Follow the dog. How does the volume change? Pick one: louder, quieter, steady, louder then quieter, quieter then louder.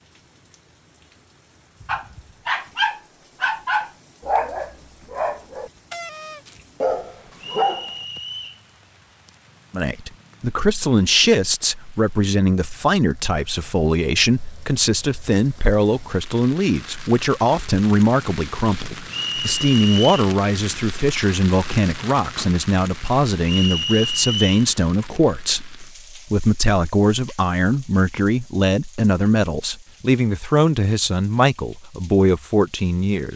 quieter then louder.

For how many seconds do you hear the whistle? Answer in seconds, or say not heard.
3 s.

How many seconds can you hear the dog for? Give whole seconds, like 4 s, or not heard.
6 s.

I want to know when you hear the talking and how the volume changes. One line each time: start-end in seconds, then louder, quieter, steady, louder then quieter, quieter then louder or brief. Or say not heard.
9.7-33.3 steady.